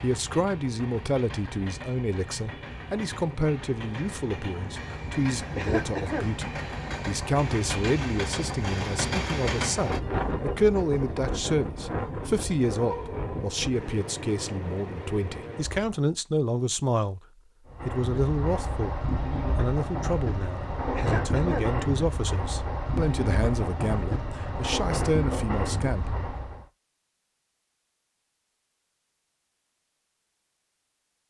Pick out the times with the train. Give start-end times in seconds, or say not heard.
0.0-15.9, 17.6-26.6.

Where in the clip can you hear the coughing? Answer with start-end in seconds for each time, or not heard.
5.5-6.3, 20.9-21.7.